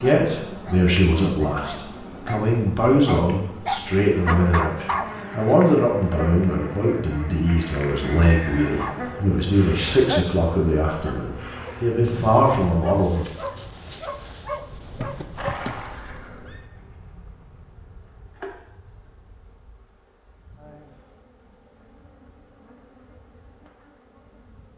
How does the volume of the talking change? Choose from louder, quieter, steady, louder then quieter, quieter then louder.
steady.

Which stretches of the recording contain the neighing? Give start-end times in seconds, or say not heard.
8.0-9.2, 14.7-16.6.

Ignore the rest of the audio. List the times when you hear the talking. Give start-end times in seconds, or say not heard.
0.0-13.3.